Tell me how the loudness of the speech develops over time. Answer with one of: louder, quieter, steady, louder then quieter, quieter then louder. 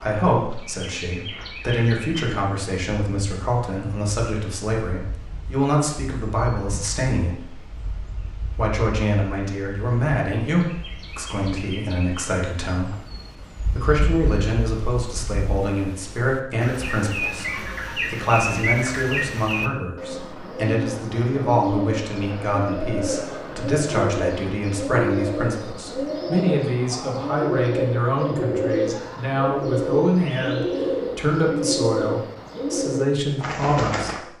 steady.